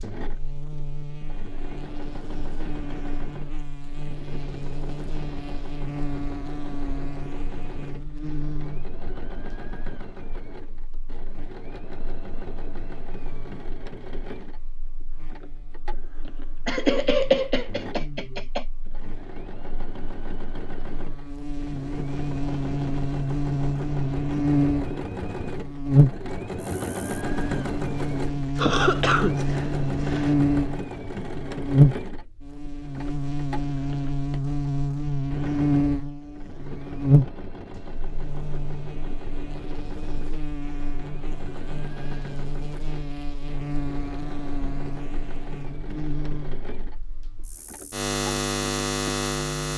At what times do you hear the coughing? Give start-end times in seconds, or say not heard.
16.6-18.6, 28.6-30.4.